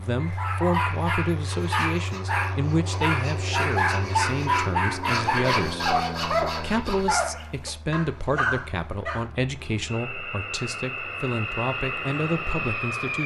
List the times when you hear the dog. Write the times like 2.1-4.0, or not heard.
0.2-9.2.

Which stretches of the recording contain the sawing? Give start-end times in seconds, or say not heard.
1.4-7.2.